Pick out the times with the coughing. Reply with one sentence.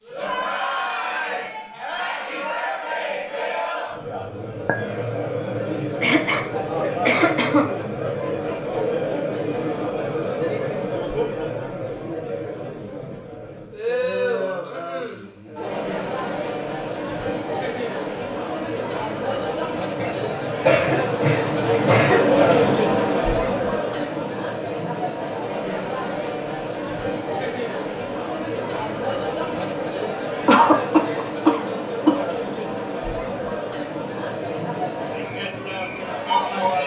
You can hear the coughing from 5.5 to 7.7 s, from 19.9 to 22.8 s and from 30.4 to 32.2 s.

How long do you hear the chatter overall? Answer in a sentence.
The chatter can be heard for 37 seconds in total.